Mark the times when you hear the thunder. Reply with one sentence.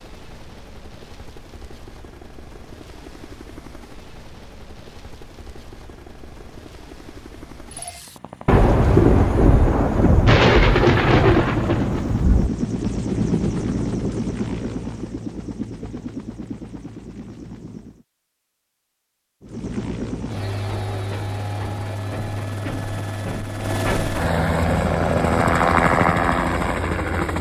You can hear the thunder from 8.4 to 12.5 s.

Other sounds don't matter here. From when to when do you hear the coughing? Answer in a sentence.
You can't hear the coughing here.